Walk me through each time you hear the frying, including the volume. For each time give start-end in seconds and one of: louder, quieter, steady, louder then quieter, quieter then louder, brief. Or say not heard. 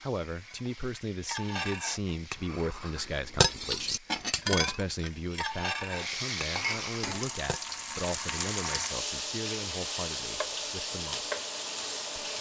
0.0-12.3 louder.